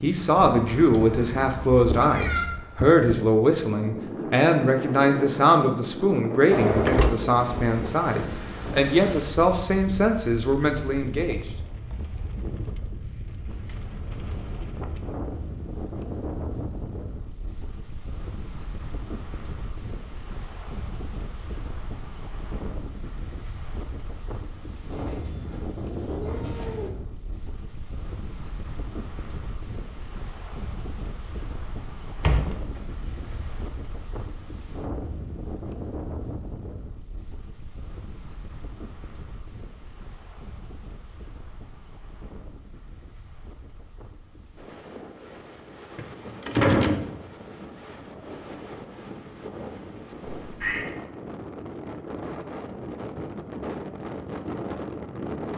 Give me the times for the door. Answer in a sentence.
You can hear the door from 6.5 to 7.1 s, from 32.2 to 33.6 s and from 46.0 to 47.1 s.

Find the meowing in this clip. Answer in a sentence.
You can hear the meowing from 0.8 to 2.6 s, from 24.9 to 26.9 s and from 50.2 to 50.9 s.